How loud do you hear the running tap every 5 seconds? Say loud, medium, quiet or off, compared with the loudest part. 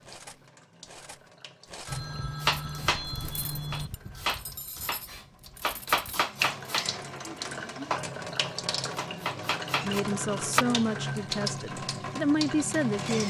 quiet, loud, loud.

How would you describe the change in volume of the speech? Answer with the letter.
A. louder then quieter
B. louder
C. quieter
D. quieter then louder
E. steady
D.